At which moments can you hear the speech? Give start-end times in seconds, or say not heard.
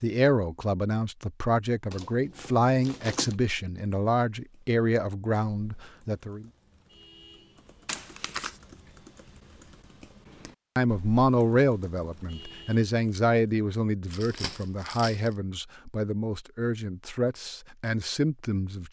0.0-6.5, 10.8-18.8.